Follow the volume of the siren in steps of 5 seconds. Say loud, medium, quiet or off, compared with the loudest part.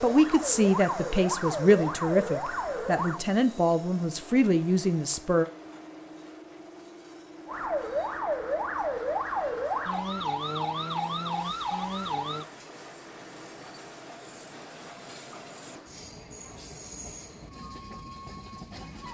loud, loud, loud, off.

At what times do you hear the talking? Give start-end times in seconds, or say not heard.
0.0-5.5.